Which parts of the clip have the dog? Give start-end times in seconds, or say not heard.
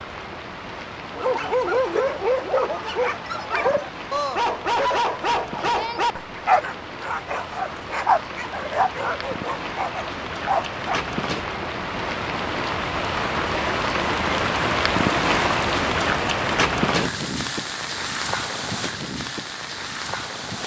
1.1-11.1.